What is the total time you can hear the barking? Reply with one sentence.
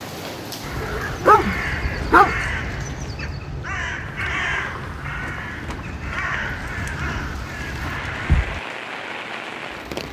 The barking can be heard for 2 seconds in total.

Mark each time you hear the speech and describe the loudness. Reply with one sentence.
You can't hear the speech here.